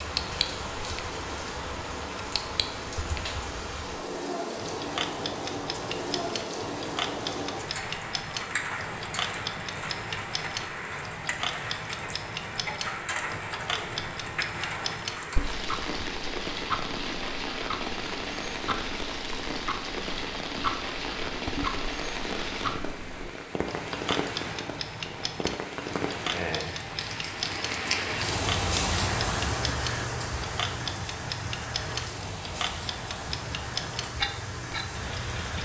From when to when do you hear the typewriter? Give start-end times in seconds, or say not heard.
not heard.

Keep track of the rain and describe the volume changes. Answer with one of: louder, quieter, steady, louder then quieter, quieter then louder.
steady.